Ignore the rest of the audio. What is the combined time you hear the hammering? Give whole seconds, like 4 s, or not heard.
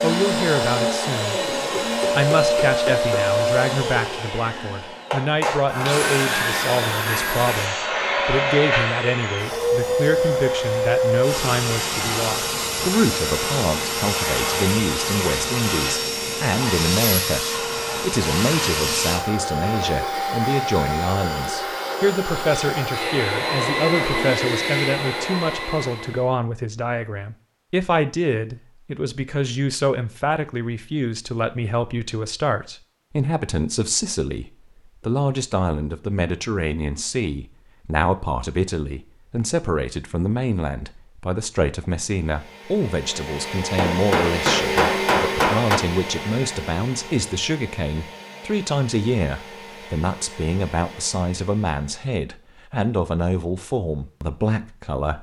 4 s.